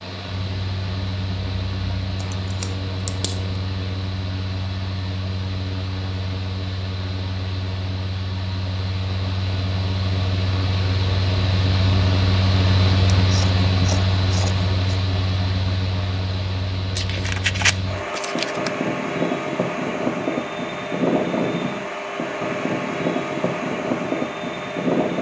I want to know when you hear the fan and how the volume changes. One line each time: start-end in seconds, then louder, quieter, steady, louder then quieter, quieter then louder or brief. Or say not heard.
0.0-25.1 louder.